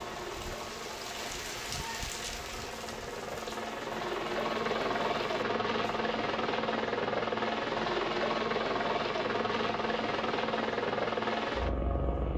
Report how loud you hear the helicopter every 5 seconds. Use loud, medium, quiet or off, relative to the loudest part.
medium, loud, loud.